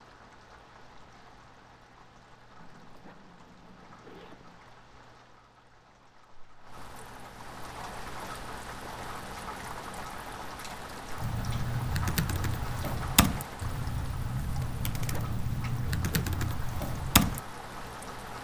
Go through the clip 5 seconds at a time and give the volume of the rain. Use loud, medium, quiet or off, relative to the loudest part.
quiet, loud, loud, loud.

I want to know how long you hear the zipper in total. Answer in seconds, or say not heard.
4 s.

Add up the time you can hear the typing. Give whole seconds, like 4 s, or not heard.
6 s.